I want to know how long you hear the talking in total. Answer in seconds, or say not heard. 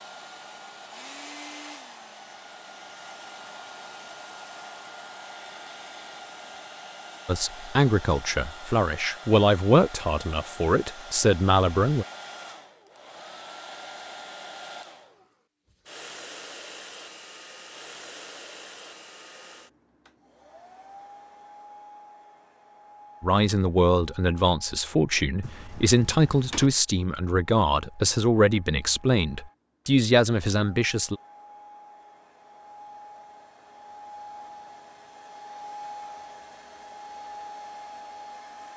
13 s.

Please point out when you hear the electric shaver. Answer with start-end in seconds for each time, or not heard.
not heard.